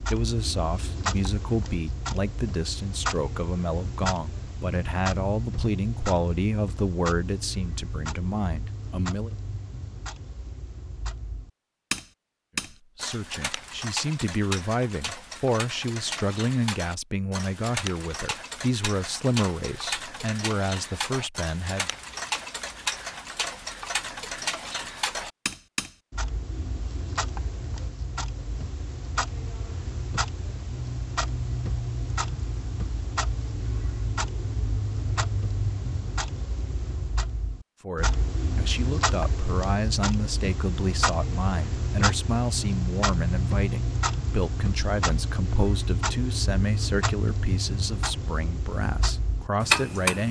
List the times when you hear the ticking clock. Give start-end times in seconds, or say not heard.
0.0-50.2.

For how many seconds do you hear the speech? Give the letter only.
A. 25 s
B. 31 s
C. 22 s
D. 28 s
B.